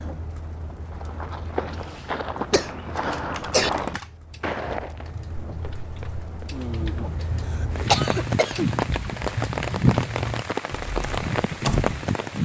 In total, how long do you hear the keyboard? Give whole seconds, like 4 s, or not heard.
9 s.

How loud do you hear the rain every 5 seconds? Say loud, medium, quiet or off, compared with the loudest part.
quiet, loud, loud.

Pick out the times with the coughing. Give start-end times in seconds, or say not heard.
1.7-3.7, 7.2-8.7.